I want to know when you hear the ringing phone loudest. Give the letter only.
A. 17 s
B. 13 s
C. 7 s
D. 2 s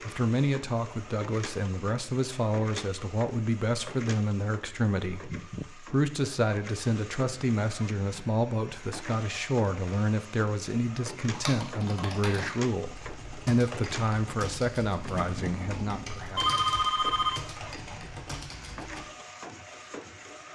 A.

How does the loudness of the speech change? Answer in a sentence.
The volume of the speech stays about the same.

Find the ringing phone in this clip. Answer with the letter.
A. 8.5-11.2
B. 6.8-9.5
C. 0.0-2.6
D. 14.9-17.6
D.